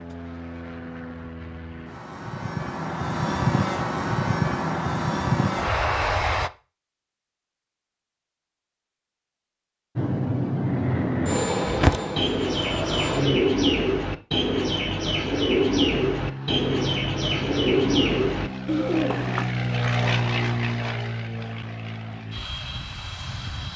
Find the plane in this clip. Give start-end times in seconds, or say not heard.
0.0-6.5, 9.9-13.4, 15.9-23.7.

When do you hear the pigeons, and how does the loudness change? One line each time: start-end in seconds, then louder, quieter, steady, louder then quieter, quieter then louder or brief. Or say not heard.
11.7-19.4 steady.